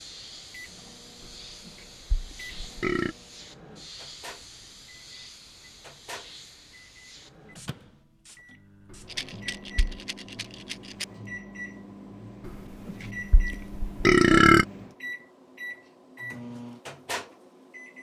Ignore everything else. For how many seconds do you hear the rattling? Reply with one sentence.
You can hear the rattling for 2 seconds altogether.